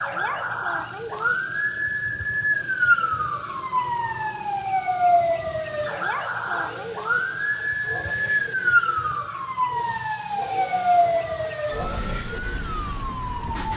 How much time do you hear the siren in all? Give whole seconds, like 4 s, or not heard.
14 s.